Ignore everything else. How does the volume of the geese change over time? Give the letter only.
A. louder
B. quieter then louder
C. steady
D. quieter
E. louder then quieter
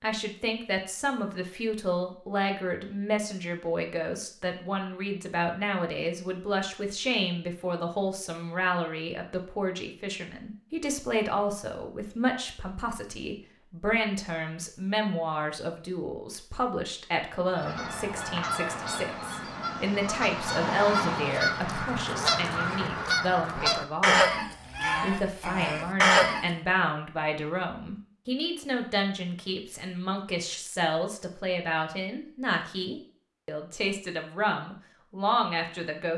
A.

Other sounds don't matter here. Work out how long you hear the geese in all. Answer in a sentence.
The geese can be heard for 9 seconds in total.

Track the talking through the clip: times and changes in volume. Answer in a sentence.
You can hear the talking from 0.0 to 36.1 s, at a steady volume.